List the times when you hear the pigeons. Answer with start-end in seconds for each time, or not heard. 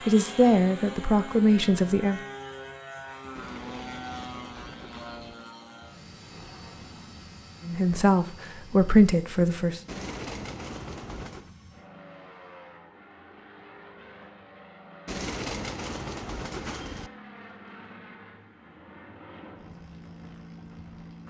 3.4-5.3, 9.8-11.5, 15.1-17.1.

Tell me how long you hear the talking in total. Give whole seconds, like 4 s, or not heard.
4 s.